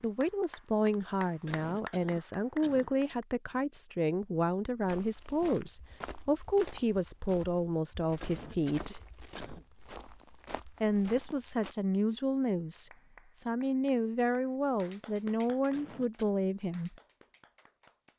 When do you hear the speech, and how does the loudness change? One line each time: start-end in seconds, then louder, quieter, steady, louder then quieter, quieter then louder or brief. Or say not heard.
0.0-9.0 steady
10.8-16.9 steady.